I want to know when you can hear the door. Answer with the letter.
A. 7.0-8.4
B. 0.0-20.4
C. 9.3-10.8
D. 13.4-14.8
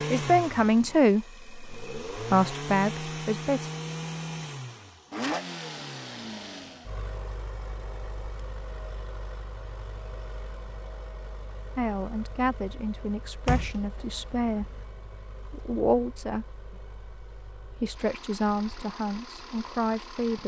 D.